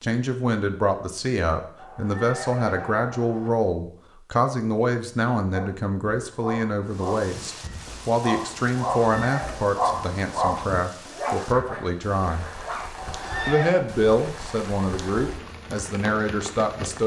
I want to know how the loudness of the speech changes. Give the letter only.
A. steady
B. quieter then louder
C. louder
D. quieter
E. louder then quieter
A.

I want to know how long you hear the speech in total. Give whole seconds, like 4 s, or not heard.
16 s.